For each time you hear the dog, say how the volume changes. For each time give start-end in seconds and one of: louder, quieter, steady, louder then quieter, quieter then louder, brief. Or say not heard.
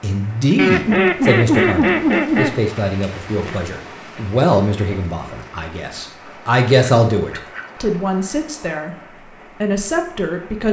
not heard.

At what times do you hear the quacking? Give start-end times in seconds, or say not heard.
0.6-2.6, 6.2-8.8.